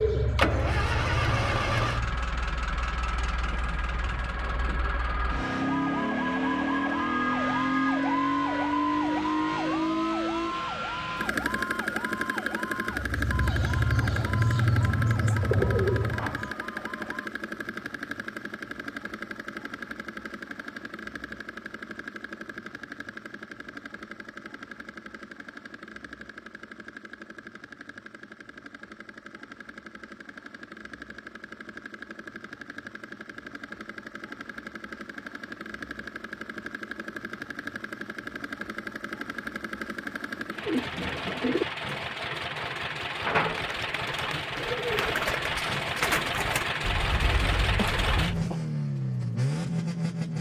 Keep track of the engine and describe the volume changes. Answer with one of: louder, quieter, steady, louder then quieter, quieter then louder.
quieter then louder.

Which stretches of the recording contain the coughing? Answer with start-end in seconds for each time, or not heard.
47.8-48.6.